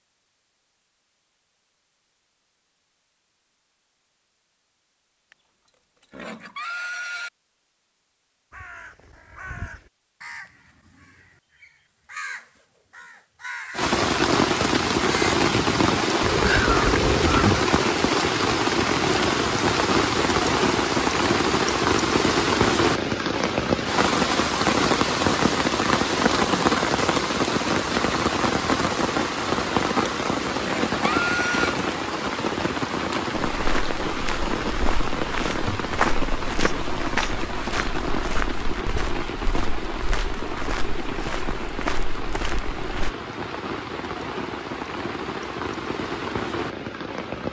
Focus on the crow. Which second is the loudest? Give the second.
17 s.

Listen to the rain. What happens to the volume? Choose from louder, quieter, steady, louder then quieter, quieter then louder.
quieter.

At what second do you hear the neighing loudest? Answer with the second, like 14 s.
31 s.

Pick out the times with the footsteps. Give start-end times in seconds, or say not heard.
33.6-43.1.